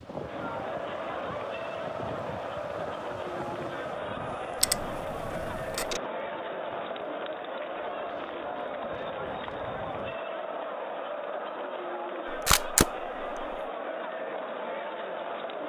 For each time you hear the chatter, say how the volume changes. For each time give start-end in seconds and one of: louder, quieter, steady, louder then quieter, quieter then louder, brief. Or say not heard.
0.0-15.6 steady.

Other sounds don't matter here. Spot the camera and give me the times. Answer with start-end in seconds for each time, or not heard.
4.6-6.0, 12.2-13.6.